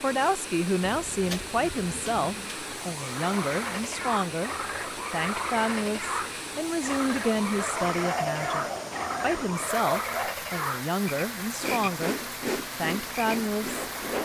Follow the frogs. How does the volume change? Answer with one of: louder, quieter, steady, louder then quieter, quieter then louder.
steady.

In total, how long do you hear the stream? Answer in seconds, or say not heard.
14 s.